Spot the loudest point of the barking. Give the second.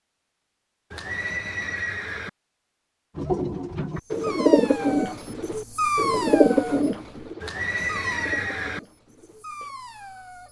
6 s.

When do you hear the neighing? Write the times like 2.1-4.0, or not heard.
0.9-2.3, 7.4-8.8.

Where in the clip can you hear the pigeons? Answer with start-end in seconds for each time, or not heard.
3.1-9.7.